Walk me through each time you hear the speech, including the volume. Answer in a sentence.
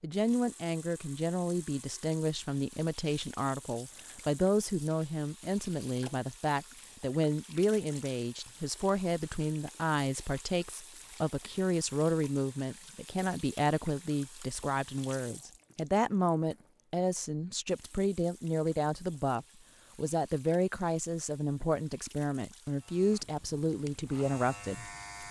You can hear the speech from 0.0 to 25.2 s, at a steady volume.